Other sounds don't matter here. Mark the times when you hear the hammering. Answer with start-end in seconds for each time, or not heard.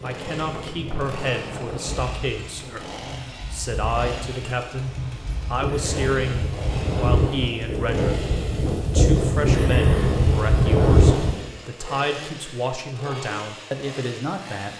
not heard.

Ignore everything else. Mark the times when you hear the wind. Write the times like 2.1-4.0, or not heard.
0.0-11.5.